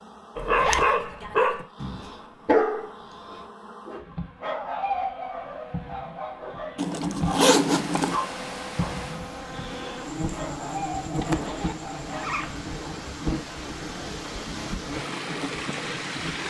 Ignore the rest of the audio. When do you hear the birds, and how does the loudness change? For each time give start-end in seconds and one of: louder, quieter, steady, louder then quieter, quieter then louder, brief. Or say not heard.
not heard.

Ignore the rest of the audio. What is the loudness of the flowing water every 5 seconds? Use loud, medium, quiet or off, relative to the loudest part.
off, medium, medium, loud.